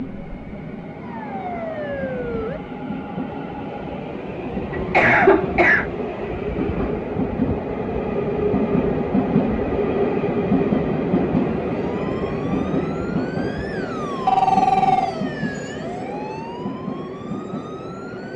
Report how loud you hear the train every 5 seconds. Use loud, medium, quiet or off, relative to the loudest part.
medium, loud, loud, medium.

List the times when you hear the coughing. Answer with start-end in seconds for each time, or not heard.
4.7-5.8.